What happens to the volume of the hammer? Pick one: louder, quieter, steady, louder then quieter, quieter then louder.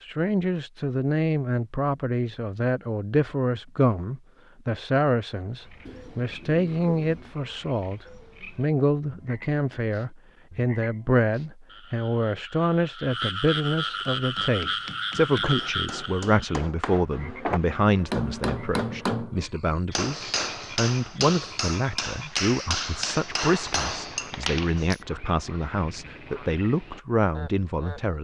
louder.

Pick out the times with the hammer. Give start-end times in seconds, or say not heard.
14.2-25.0.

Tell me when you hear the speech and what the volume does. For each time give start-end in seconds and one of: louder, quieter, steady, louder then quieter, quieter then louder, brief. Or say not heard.
0.0-28.1 steady.